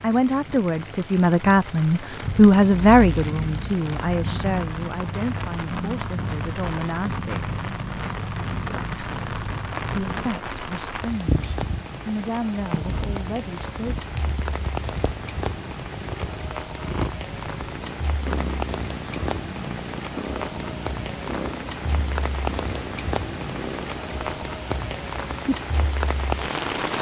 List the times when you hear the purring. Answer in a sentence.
The purring can be heard from 2.2 to 26.9 s.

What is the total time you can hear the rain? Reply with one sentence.
The rain can be heard for 27 seconds in total.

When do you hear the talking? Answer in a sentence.
You can hear the talking from 0.0 to 7.5 s and from 9.9 to 13.9 s.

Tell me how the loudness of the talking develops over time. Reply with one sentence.
The volume of the talking goes down.